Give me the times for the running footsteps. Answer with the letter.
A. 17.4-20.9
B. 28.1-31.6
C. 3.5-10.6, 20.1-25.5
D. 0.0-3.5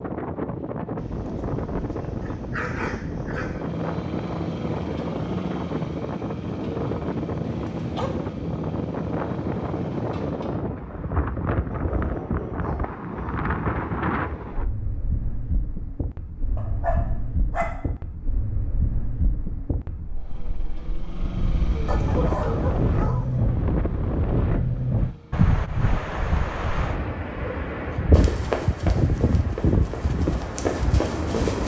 B.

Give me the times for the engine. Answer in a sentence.
You can hear the engine from 3.5 to 10.6 s and from 20.1 to 25.5 s.